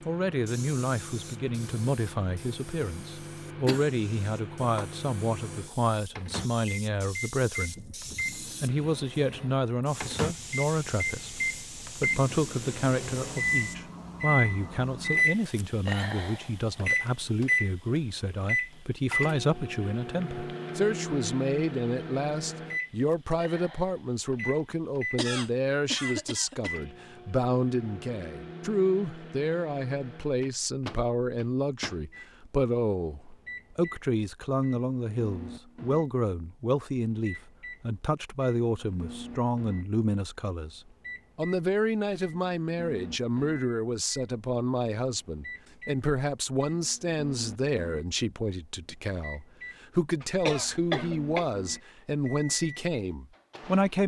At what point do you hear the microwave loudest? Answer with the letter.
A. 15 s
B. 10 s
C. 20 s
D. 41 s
A.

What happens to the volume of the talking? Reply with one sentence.
The volume of the talking stays about the same.